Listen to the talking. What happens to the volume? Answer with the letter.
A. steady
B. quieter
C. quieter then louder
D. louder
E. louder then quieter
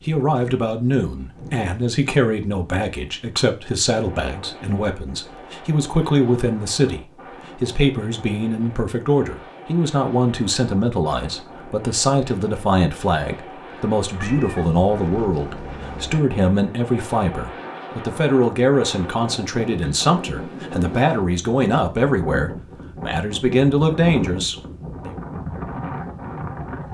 A.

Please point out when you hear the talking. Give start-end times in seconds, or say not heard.
0.1-25.1.